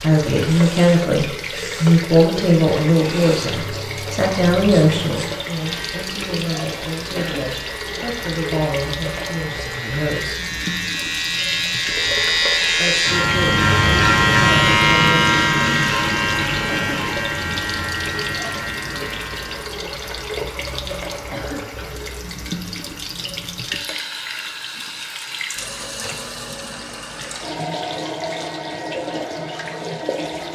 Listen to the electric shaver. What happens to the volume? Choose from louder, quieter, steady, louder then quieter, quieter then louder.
louder then quieter.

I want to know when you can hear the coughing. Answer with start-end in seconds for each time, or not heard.
7.2-7.7, 16.6-17.1, 21.3-21.8.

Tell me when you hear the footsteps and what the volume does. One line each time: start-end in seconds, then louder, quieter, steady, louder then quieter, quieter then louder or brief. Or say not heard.
not heard.